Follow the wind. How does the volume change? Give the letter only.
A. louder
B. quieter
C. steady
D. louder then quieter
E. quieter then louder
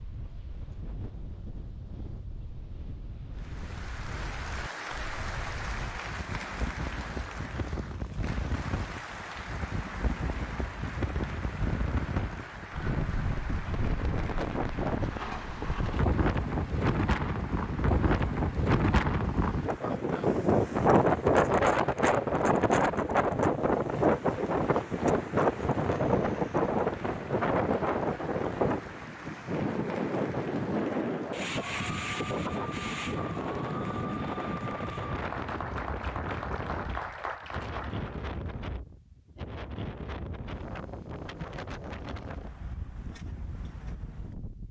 D.